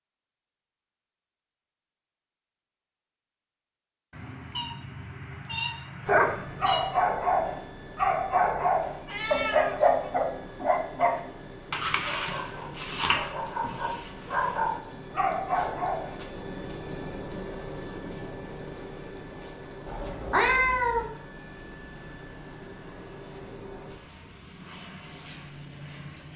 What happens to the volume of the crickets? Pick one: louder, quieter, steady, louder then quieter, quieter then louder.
quieter.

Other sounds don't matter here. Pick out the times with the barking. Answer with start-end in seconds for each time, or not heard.
6.0-16.1.